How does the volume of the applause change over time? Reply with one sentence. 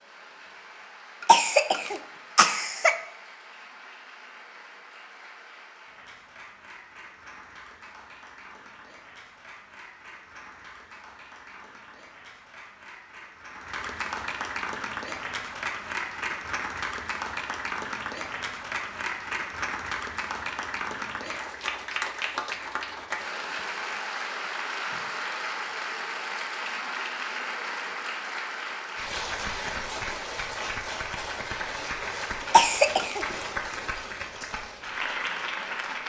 The volume of the applause goes up.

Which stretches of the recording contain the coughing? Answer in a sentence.
You can hear the coughing from 1.2 to 3.0 s and from 32.5 to 33.2 s.